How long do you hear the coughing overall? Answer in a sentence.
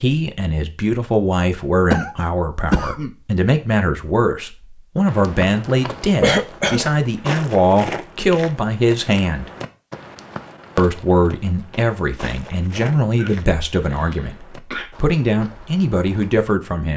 You can hear the coughing for 4 seconds altogether.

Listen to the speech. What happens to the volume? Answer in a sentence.
The volume of the speech stays about the same.